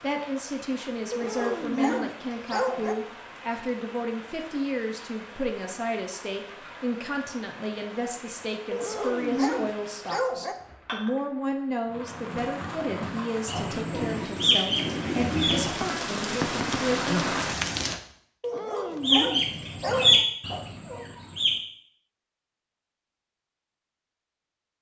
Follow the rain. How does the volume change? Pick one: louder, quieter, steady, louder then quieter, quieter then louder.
louder.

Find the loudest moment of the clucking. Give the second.
20 s.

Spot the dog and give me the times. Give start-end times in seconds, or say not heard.
1.1-3.0, 8.7-10.6, 18.4-20.1.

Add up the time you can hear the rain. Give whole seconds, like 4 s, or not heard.
18 s.